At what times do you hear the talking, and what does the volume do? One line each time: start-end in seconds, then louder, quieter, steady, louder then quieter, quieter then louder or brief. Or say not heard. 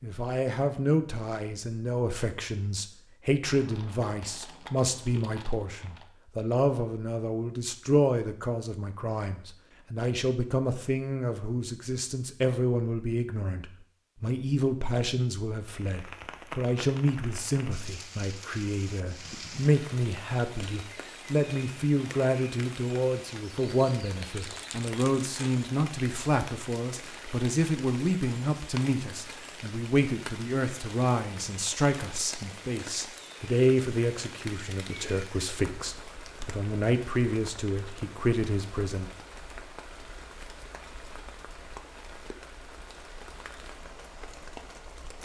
0.0-39.1 steady.